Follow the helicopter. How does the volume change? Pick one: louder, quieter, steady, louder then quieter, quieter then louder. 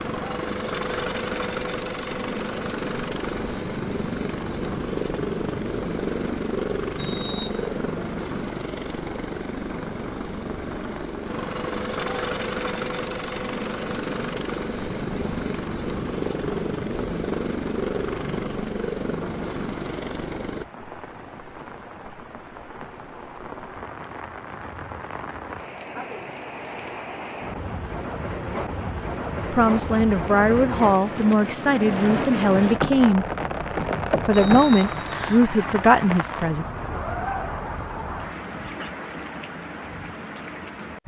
steady.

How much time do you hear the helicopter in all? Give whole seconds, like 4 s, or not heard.
21 s.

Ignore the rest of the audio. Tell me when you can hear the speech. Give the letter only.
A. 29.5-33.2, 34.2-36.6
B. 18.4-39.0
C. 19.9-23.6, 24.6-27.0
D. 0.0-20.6
A.